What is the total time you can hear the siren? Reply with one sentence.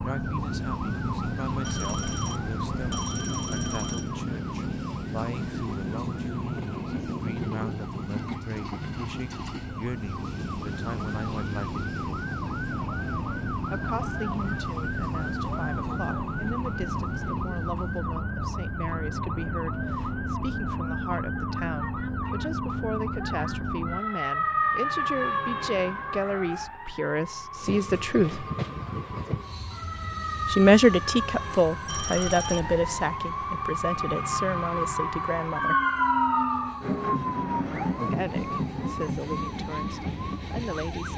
The siren can be heard for 41 seconds in total.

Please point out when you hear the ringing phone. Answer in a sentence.
You can hear the ringing phone from 1.6 to 4.2 s and from 31.9 to 33.1 s.